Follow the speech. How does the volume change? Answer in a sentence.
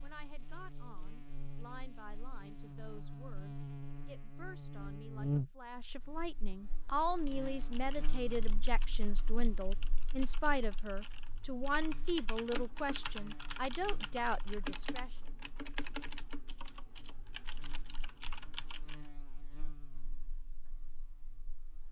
The loudness of the speech goes up.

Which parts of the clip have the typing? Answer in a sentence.
The typing can be heard from 7.2 to 18.9 s.